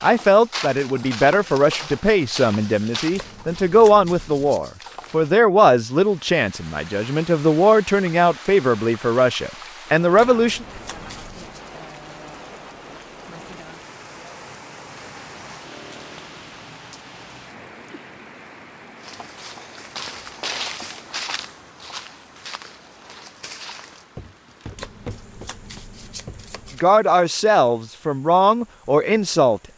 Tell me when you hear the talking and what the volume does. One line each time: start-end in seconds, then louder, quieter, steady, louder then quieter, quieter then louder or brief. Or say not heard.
0.0-10.7 steady
26.8-29.7 brief.